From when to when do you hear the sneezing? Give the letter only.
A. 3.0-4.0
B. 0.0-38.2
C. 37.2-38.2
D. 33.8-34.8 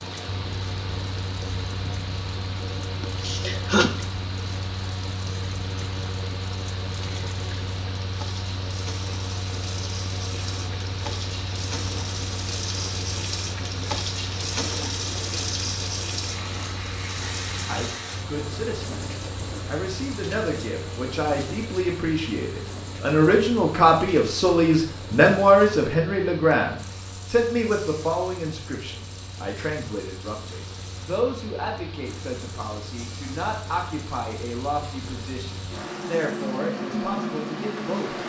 A.